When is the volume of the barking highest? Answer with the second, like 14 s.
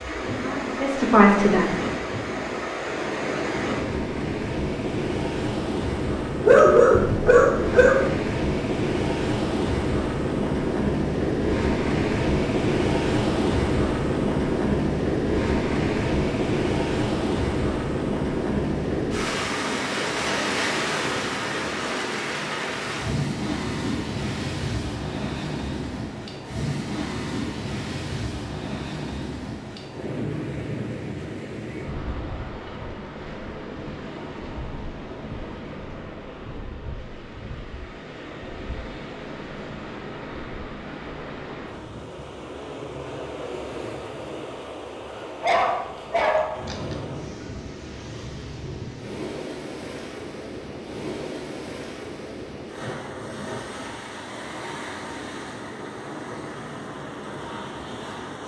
7 s.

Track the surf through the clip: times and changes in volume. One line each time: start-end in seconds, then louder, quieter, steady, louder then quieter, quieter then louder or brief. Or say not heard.
0.0-58.4 quieter.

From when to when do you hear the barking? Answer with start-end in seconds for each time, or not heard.
6.4-8.1, 45.4-47.0.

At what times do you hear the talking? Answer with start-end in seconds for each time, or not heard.
0.0-1.6.